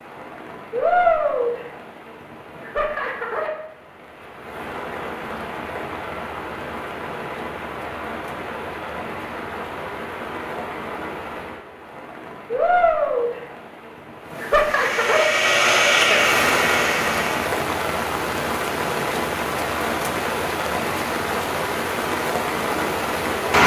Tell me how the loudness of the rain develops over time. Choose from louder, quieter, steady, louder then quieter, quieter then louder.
quieter then louder.